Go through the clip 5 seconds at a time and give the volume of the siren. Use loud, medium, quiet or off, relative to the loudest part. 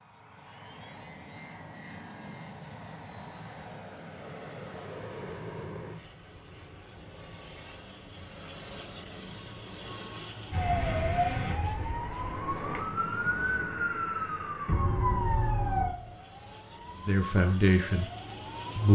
off, off, loud, loud.